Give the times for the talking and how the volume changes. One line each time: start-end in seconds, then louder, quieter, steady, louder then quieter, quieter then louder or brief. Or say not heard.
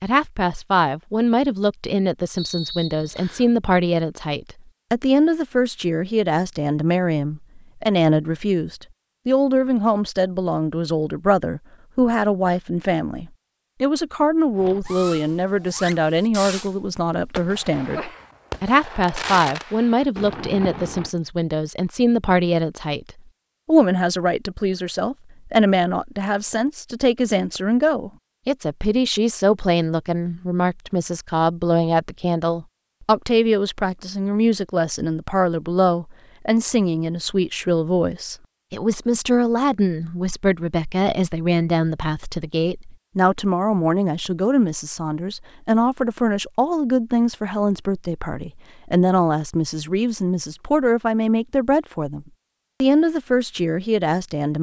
0.0-54.5 steady.